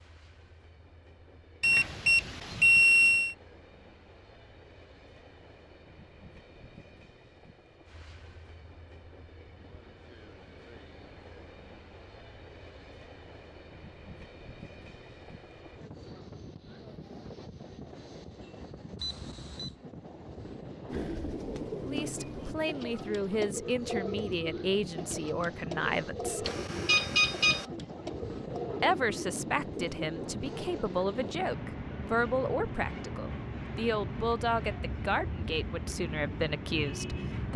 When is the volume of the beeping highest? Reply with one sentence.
The volume of the beeping peaks at 3 seconds.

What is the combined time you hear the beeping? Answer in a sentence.
The beeping can be heard for 4 seconds in total.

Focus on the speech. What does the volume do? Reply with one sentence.
The loudness of the speech stays about the same.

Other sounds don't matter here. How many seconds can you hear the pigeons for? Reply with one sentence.
The pigeons can be heard for 9 seconds in total.